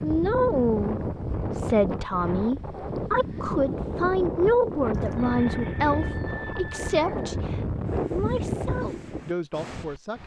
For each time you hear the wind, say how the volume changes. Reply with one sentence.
You can hear the wind from 0.0 to 10.2 s, at a steady volume.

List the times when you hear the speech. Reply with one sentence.
You can hear the speech from 0.0 to 10.2 s.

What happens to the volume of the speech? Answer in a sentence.
The loudness of the speech goes down.